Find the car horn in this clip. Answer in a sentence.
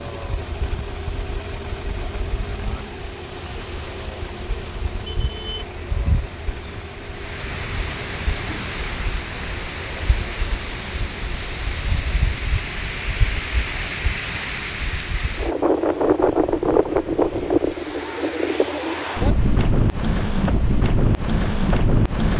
You can hear the car horn from 5.0 to 5.7 s.